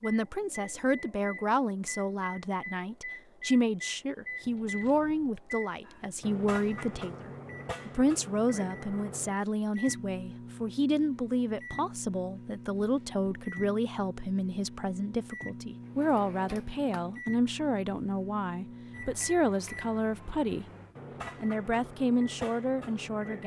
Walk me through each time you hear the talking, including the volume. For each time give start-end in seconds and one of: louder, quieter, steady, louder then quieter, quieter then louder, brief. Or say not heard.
0.0-20.6 steady
21.4-23.4 brief.